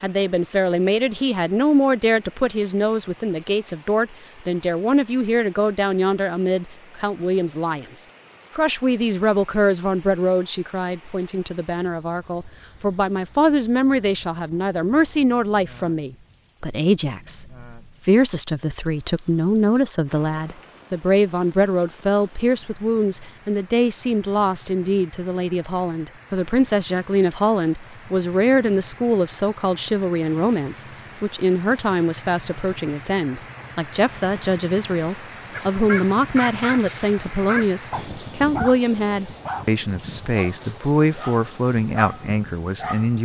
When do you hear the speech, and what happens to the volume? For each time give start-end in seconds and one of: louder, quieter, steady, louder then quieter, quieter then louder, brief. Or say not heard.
0.0-43.2 steady.